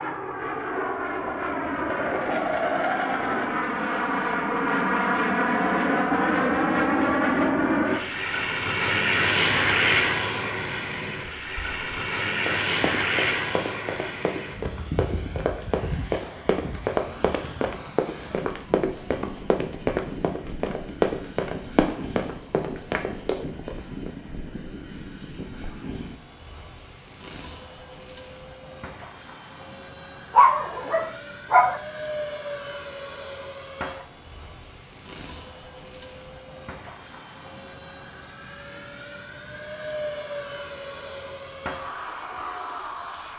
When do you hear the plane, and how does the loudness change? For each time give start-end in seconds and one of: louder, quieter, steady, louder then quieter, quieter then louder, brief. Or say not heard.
0.0-43.3 quieter.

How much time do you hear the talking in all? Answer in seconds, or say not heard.
not heard.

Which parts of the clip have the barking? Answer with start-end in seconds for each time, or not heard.
30.4-31.8.